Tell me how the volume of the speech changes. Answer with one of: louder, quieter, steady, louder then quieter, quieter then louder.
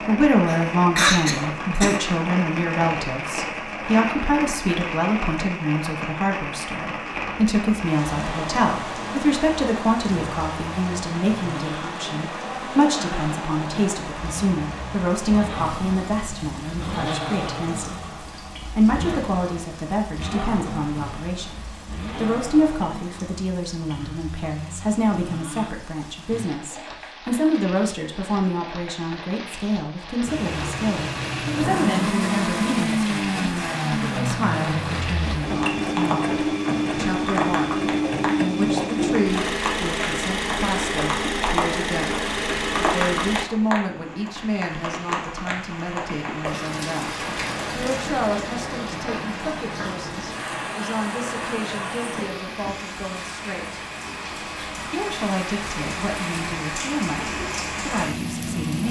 quieter.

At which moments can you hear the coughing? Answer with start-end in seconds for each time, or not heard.
0.5-2.0.